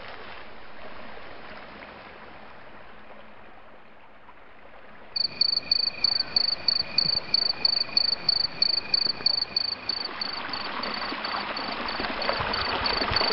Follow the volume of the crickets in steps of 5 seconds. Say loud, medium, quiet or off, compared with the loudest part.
off, loud, medium.